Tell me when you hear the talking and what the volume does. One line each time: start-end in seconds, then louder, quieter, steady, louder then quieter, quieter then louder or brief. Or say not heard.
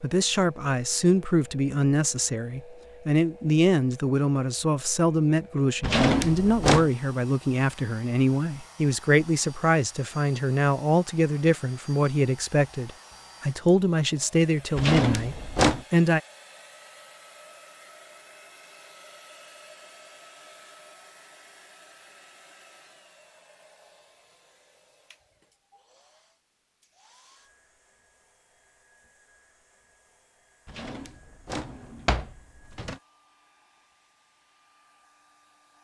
0.0-16.2 steady.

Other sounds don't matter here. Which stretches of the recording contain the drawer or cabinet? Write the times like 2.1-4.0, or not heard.
5.8-6.9, 14.8-15.8, 30.7-33.0.